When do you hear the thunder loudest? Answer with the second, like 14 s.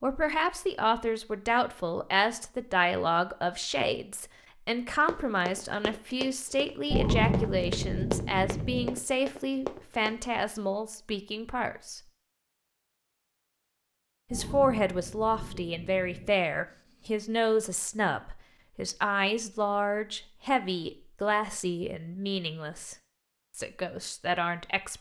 7 s.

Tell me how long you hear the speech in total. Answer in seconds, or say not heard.
22 s.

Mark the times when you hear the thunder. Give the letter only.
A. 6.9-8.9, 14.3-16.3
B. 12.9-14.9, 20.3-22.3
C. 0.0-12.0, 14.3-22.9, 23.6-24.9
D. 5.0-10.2
A.